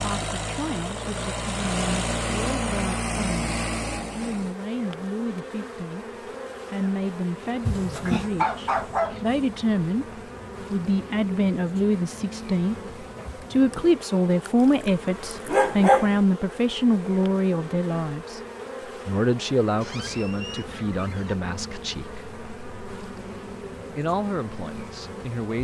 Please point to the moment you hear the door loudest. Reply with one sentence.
The loudest moment of the door is at 8 seconds.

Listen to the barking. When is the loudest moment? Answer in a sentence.
The loudest moment of the barking is at 16 seconds.